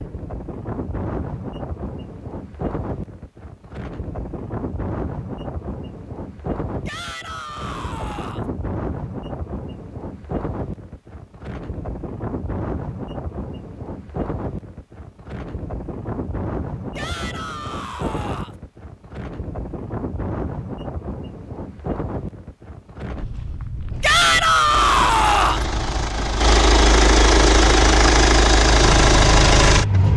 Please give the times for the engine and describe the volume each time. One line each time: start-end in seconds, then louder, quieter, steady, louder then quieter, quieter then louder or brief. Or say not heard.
24.7-30.1 louder.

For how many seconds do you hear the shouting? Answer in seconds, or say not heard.
5 s.